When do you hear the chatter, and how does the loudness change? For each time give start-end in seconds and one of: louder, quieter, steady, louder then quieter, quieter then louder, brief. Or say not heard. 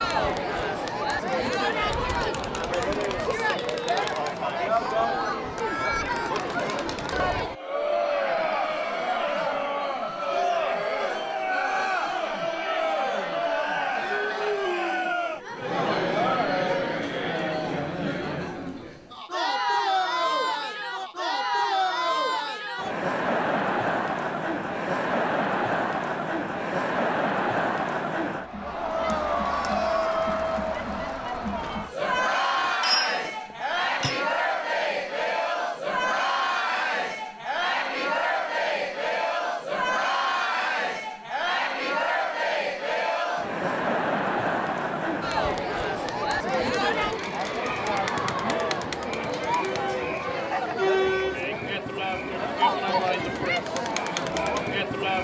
0.0-55.1 steady.